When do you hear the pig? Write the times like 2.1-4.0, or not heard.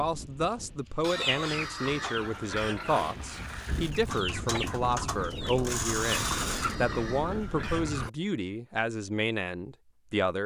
1.0-3.0, 6.2-8.1.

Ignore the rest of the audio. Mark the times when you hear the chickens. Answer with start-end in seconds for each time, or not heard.
1.1-6.8.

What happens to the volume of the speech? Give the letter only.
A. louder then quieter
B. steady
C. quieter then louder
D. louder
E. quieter
B.